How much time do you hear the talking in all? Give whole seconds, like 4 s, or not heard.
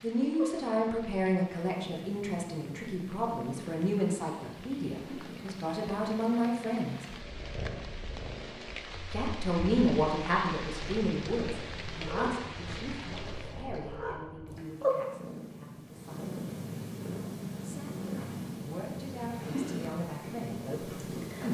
18 s.